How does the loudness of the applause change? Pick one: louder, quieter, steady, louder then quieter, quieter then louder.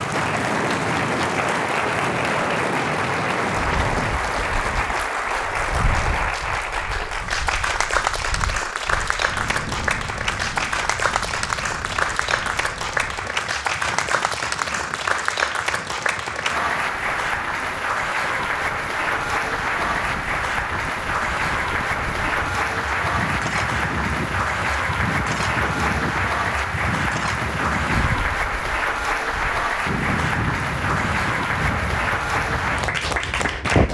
steady.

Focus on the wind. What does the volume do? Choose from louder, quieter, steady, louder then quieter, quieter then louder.
quieter then louder.